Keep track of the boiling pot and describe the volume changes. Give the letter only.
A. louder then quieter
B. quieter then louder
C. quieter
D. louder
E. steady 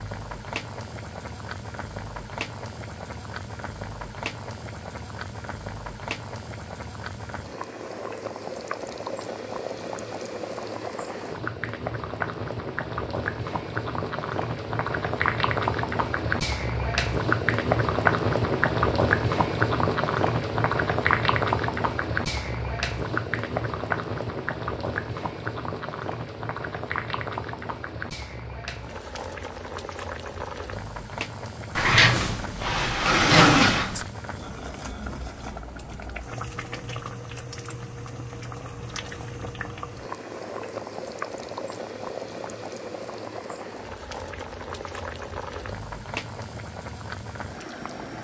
A.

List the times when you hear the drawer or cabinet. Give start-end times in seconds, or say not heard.
31.8-34.0.